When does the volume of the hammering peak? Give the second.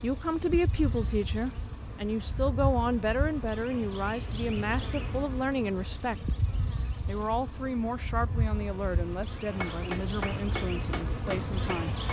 10 s.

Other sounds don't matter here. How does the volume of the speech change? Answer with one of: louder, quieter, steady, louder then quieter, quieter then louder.
quieter.